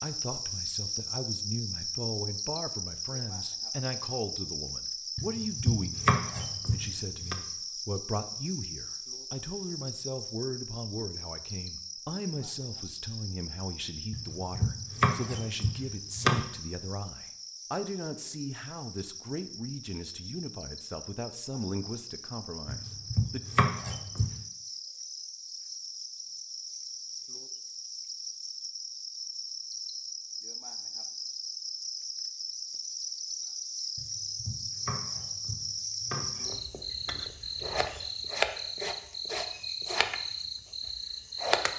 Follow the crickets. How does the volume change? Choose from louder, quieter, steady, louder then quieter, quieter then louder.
quieter then louder.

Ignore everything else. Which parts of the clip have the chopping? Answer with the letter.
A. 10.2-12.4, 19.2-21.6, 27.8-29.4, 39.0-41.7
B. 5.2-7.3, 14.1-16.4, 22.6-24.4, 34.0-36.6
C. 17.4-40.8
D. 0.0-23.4
B.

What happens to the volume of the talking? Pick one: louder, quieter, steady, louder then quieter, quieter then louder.
steady.